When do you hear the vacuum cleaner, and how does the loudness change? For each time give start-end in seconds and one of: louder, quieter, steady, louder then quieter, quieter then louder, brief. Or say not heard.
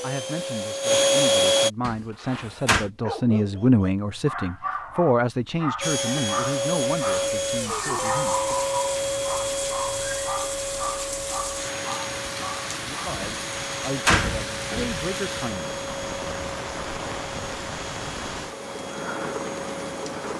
0.0-1.7 brief
5.8-20.3 quieter.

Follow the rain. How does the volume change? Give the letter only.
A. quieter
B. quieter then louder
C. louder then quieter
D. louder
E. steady
E.